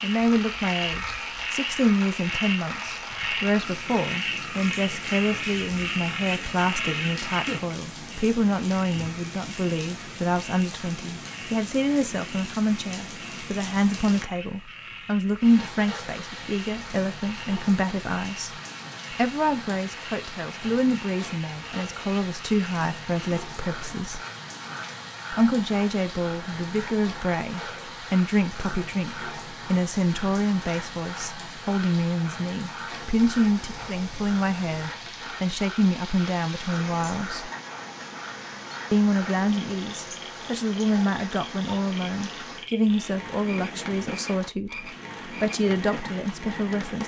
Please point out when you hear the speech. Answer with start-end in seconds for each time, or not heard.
0.0-24.2, 25.3-37.5, 38.9-47.0.